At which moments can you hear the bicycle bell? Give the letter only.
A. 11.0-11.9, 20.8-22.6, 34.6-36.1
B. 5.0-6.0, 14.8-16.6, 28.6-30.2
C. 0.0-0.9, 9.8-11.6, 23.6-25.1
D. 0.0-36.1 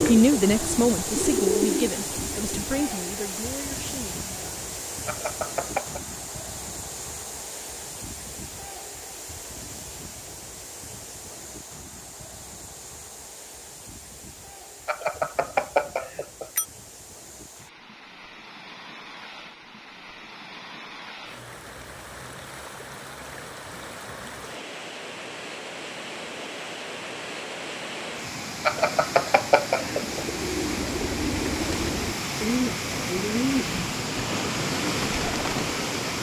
B.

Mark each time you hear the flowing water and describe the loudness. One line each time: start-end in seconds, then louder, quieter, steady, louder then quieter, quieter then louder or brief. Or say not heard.
0.0-36.1 quieter then louder.